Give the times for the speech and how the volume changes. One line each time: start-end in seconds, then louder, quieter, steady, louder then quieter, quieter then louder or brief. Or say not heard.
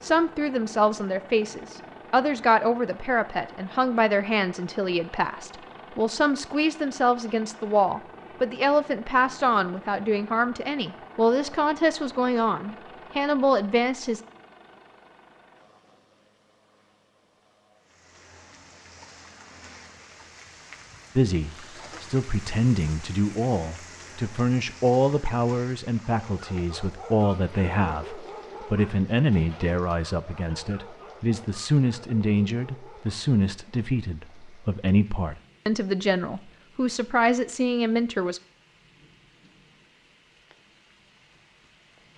0.0-14.2 steady
21.1-38.4 steady.